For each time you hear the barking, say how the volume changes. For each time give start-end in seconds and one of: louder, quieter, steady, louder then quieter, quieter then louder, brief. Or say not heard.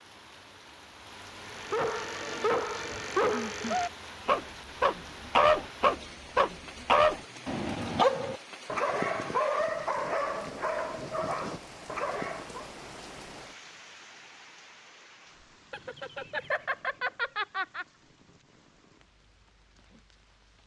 1.4-12.7 louder then quieter.